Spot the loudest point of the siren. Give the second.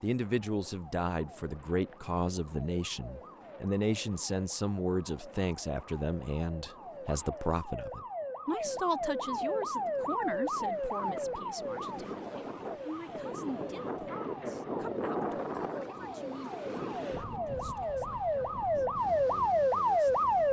20 s.